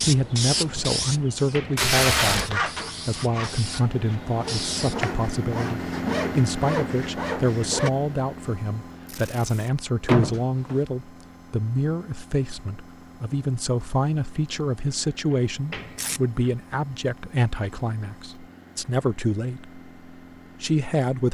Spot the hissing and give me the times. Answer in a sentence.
You can hear the hissing from 0.0 to 5.0 s.